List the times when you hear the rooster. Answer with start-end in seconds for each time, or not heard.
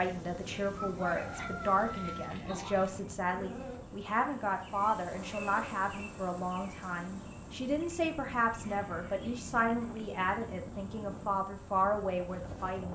0.7-2.4.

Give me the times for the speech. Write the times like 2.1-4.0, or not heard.
0.0-12.8.